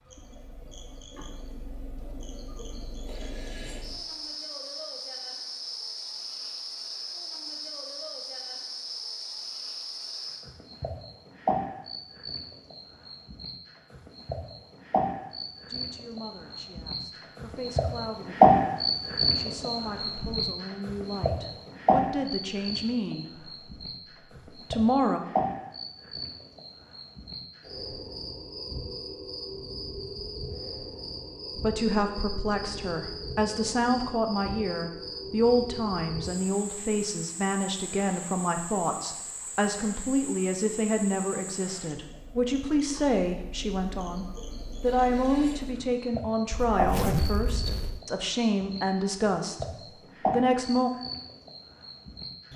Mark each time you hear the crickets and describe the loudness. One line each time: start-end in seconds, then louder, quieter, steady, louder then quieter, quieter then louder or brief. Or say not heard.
0.1-52.5 louder then quieter.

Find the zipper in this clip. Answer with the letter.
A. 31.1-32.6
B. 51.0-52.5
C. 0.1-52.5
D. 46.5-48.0
D.